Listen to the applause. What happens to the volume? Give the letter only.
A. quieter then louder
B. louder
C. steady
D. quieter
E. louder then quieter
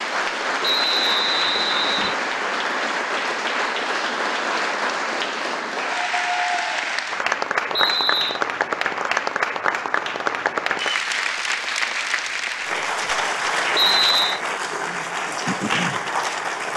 C.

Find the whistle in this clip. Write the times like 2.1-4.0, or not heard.
0.6-2.1, 7.7-8.4, 13.7-14.4.